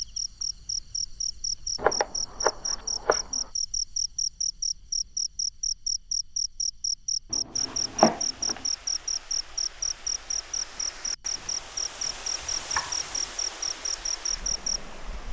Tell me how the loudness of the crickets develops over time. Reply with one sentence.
The volume of the crickets stays about the same.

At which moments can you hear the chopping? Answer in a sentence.
You can hear the chopping from 1.8 to 3.4 s, from 7.3 to 8.6 s and from 11.3 to 13.3 s.